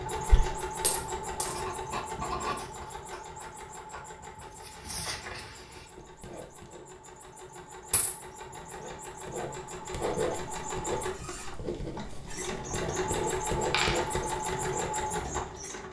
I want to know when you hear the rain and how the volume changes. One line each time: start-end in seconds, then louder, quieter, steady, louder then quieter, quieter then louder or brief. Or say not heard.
not heard.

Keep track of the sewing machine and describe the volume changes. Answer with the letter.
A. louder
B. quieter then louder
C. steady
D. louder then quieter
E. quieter
B.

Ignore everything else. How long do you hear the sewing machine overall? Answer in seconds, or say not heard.
16 s.